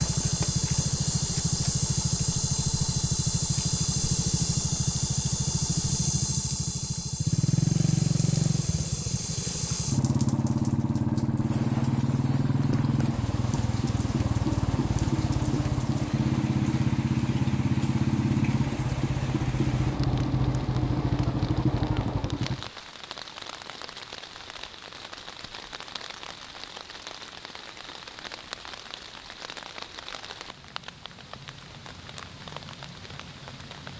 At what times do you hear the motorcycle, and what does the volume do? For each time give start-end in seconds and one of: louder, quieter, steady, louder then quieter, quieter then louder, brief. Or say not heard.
0.0-22.7 steady.